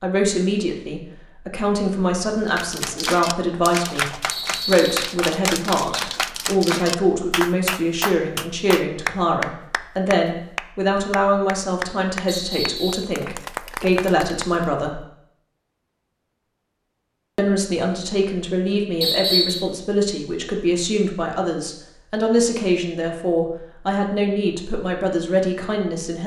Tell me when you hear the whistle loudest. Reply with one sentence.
The volume of the whistle peaks at 19 seconds.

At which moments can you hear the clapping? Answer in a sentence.
You can hear the clapping from 2.5 to 14.7 s.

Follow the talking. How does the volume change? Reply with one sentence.
The volume of the talking stays about the same.